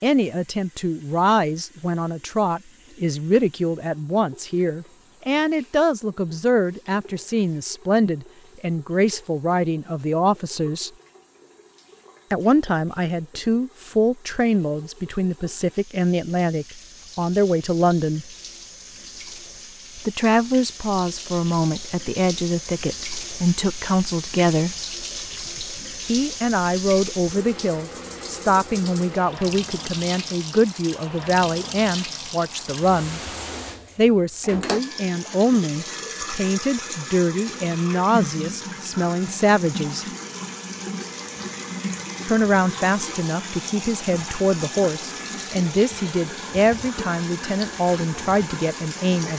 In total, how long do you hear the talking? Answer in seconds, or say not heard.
42 s.